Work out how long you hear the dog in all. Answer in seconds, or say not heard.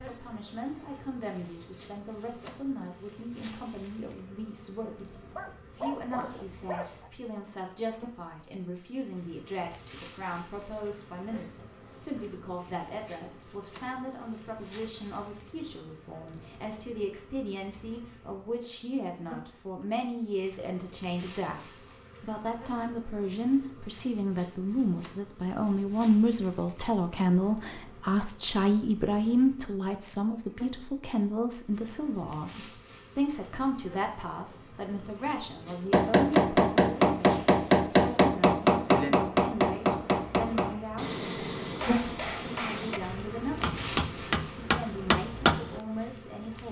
2 s.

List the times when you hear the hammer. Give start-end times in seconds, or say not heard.
35.9-45.8.